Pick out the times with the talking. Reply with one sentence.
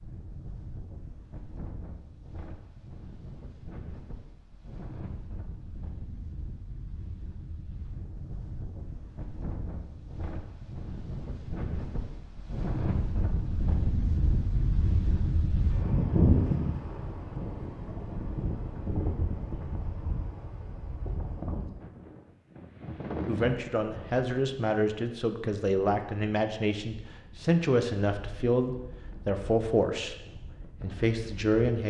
The talking can be heard from 23.2 to 30.1 s and from 30.8 to 31.8 s.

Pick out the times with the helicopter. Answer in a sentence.
The helicopter can't be heard in this clip.